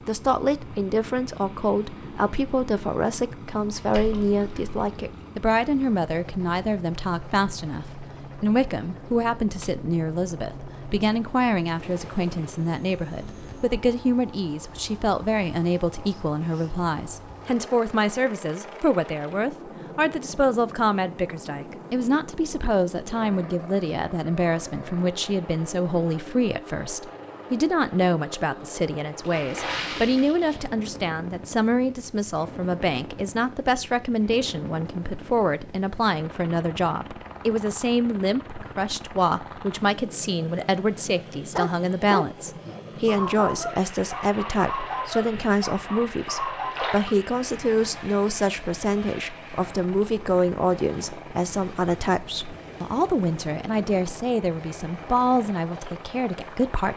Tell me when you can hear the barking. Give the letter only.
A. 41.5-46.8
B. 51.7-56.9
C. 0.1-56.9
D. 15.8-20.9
A.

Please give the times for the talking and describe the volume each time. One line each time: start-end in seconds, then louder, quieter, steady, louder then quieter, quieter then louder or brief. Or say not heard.
0.1-56.9 steady.